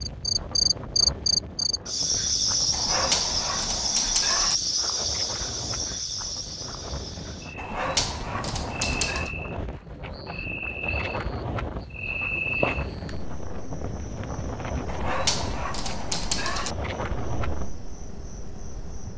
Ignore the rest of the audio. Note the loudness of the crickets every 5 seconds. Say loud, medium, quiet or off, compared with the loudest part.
loud, medium, medium, quiet.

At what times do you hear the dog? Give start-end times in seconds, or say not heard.
2.7-4.5, 7.5-9.3, 14.8-16.8.